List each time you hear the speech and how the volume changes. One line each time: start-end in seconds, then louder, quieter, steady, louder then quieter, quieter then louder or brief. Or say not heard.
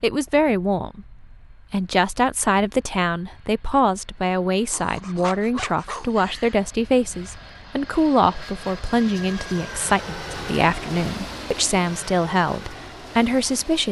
0.0-13.8 steady.